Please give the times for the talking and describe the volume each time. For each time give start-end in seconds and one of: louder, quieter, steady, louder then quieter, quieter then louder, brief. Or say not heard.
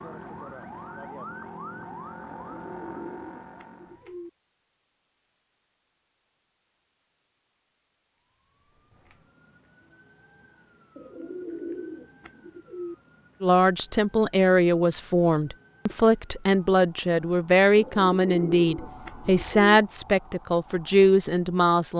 13.4-21.9 steady.